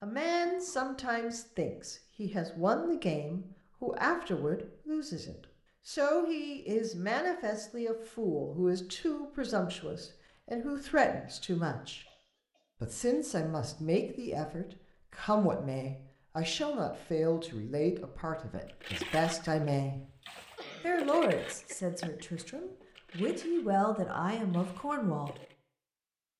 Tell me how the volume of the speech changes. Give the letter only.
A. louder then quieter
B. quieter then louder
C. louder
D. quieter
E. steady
E.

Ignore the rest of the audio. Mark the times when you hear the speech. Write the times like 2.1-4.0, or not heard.
0.0-12.1, 12.8-20.0, 20.8-25.4.